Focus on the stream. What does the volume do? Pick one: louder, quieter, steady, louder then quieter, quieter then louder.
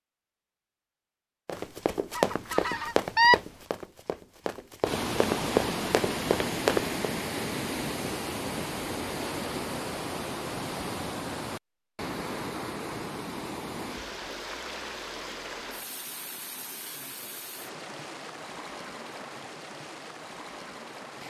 quieter.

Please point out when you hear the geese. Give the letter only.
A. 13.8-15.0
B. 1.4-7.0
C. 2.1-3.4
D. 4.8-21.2
C.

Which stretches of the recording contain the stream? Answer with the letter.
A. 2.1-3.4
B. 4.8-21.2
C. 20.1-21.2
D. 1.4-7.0
B.